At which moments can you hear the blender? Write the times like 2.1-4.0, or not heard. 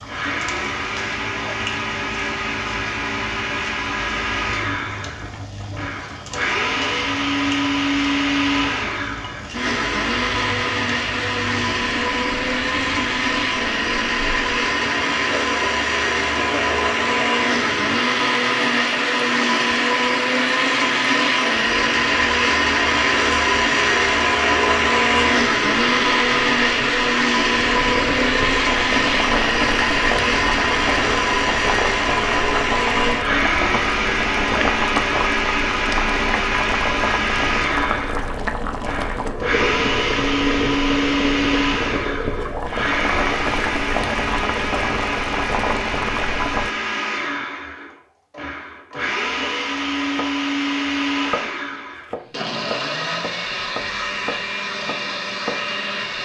0.0-56.2.